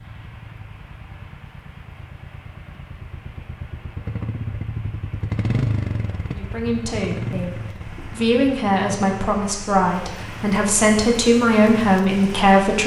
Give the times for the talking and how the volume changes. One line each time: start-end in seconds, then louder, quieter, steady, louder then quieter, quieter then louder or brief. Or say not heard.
6.2-12.8 louder.